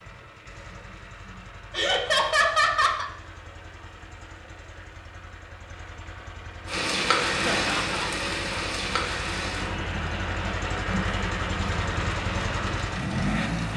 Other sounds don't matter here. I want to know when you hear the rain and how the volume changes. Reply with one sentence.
You can hear the rain from 6.7 to 13.7 s, getting quieter.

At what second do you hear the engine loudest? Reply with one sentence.
The volume of the engine peaks at 13 seconds.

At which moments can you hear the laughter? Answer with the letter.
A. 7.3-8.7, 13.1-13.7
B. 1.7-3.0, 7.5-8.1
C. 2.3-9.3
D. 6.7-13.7
B.